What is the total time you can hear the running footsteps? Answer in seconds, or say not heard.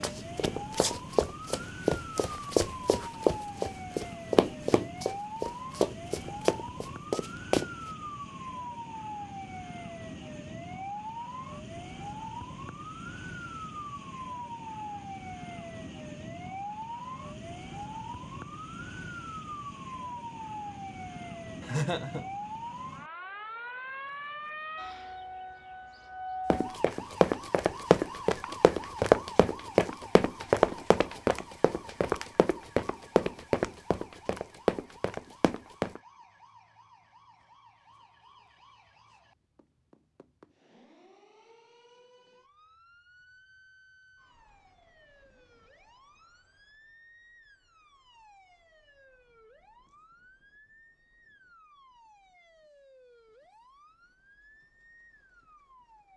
17 s.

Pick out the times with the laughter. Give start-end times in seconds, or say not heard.
21.6-22.2.